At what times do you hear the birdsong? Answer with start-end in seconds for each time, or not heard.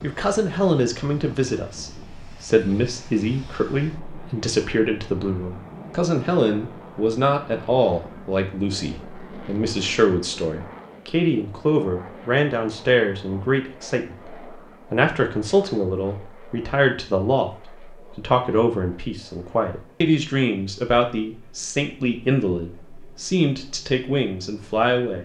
not heard.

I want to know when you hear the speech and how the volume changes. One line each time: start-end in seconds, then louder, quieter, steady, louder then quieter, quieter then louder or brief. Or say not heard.
0.0-25.1 steady.